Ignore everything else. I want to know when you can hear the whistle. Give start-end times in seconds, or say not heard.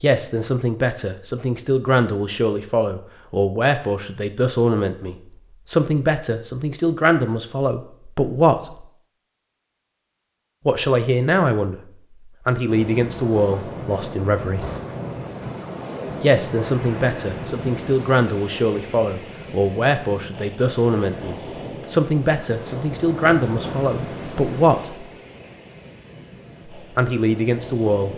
not heard.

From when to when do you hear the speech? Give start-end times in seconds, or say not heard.
0.0-8.8, 10.7-14.7, 16.2-25.1, 26.8-28.1.